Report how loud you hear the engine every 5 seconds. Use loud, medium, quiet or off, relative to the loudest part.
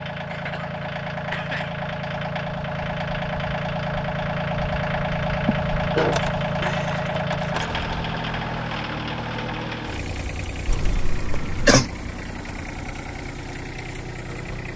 loud, loud, medium.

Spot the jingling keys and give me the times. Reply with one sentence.
The jingling keys can be heard from 6.1 to 7.8 s.